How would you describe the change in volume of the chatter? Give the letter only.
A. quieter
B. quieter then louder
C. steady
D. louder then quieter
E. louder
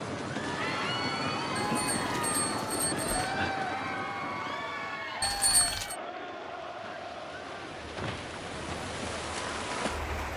A.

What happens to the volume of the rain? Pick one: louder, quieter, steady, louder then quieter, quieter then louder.
quieter then louder.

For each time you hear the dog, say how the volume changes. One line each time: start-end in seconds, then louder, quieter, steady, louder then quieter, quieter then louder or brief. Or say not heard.
not heard.